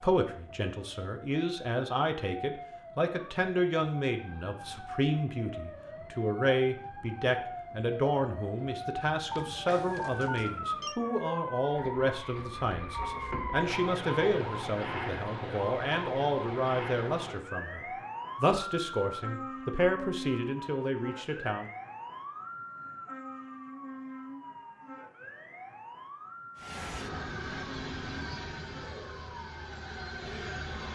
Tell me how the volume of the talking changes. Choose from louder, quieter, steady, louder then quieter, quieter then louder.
steady.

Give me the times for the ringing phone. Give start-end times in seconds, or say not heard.
9.3-10.9.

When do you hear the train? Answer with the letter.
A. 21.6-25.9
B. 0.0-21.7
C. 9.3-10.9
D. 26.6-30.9
D.